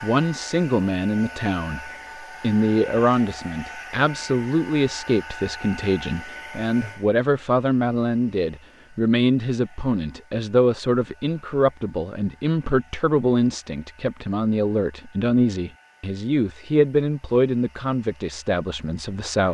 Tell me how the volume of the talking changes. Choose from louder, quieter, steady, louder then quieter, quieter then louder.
steady.